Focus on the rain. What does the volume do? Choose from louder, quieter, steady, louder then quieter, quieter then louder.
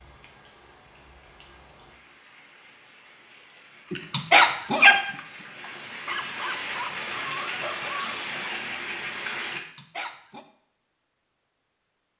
louder.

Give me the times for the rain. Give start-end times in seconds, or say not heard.
0.0-9.6.